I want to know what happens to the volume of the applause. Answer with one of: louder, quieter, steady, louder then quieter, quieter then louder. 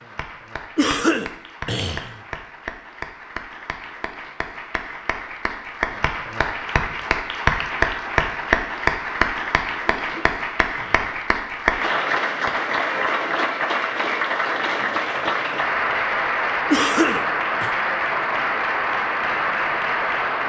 louder.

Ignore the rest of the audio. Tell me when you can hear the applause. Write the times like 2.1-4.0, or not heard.
0.0-20.4.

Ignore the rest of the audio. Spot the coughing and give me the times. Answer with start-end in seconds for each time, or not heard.
0.8-2.1, 9.8-11.2, 16.7-17.7.